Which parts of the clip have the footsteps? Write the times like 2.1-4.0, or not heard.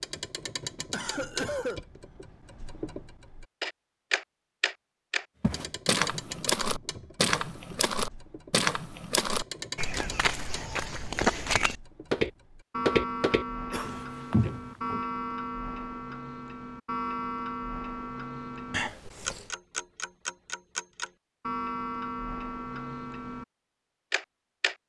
5.4-15.0.